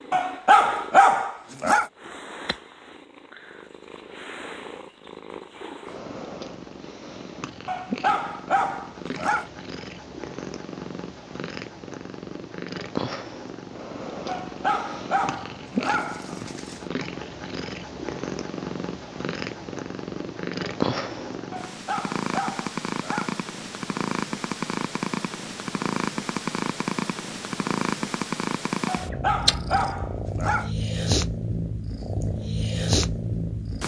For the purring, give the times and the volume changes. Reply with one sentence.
The purring can be heard from 0.0 to 33.8 s, getting louder.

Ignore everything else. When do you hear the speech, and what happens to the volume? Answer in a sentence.
The speech can't be heard in this clip.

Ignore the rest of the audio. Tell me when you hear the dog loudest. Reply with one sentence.
The loudest moment of the dog is at 1 second.